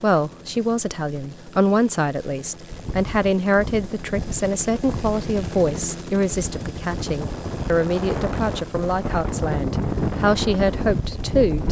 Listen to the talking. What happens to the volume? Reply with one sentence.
The loudness of the talking stays about the same.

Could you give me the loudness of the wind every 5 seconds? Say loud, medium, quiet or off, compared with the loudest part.
medium, loud, loud.